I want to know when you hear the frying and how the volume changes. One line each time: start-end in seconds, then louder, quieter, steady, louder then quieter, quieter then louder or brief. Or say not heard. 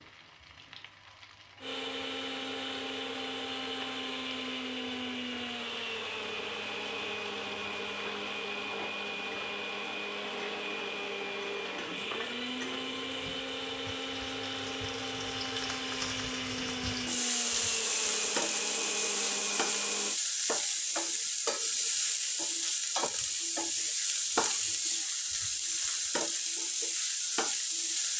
0.0-28.1 louder.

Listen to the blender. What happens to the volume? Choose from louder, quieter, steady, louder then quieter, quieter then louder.
steady.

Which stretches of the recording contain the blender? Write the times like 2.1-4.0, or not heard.
1.6-20.2.